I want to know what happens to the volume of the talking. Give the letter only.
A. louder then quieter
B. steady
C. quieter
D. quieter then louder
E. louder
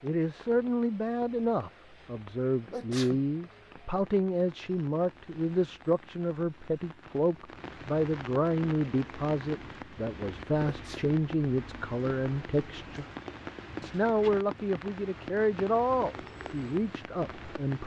B.